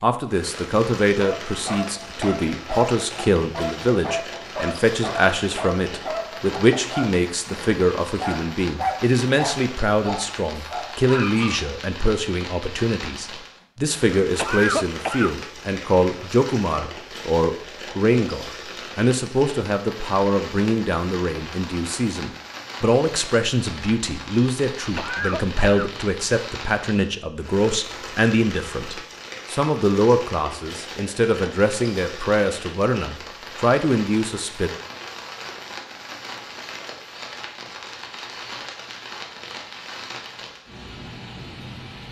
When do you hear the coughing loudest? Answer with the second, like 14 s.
15 s.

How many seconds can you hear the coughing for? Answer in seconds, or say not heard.
2 s.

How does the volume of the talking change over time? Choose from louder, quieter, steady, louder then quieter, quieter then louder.
steady.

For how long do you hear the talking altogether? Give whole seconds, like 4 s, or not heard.
35 s.